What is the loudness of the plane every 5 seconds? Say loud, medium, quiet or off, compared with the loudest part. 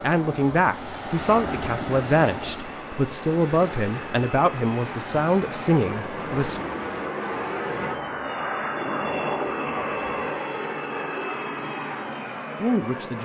medium, loud, loud.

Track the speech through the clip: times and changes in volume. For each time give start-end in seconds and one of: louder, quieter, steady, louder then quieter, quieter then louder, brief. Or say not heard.
0.0-6.7 steady
12.6-13.2 brief.